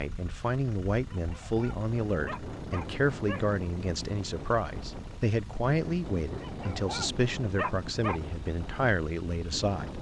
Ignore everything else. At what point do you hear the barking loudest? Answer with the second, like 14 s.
8 s.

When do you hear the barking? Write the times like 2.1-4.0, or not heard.
1.1-3.5, 6.4-8.2.